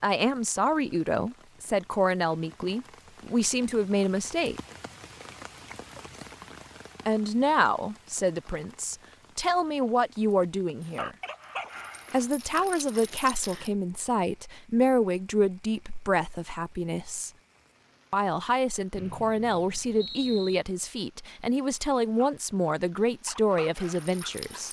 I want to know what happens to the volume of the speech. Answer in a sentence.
The volume of the speech stays about the same.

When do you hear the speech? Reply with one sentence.
The speech can be heard from 0.0 to 4.6 s, from 7.0 to 11.2 s, from 12.1 to 17.3 s and from 18.1 to 24.6 s.